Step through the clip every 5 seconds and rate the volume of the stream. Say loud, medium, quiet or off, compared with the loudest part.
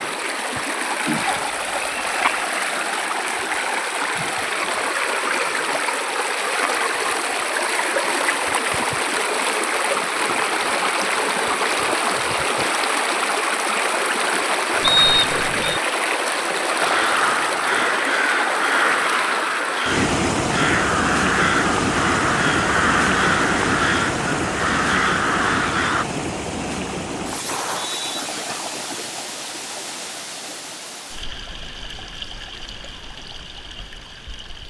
loud, loud, loud, loud, loud, medium, quiet.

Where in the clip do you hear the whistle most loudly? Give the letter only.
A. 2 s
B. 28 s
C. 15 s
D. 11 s
C.